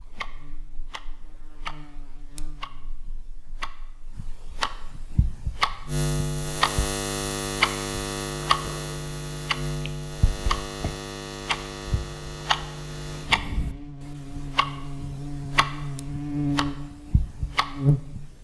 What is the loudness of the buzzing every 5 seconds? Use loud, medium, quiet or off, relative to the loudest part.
quiet, loud, medium, loud.